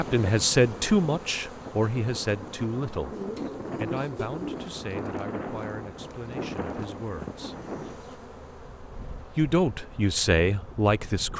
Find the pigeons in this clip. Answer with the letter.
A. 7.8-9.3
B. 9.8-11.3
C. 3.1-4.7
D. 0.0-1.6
C.